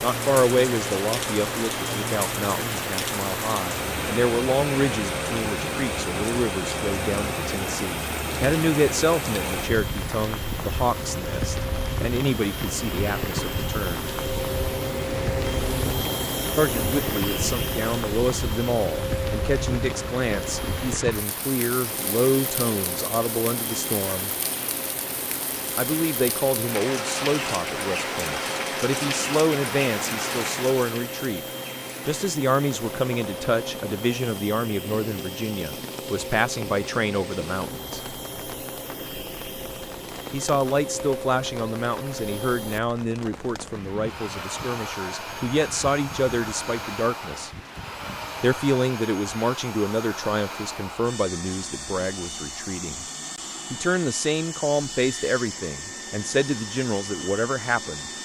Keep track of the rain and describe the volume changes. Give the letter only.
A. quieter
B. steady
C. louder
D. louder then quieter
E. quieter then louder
A.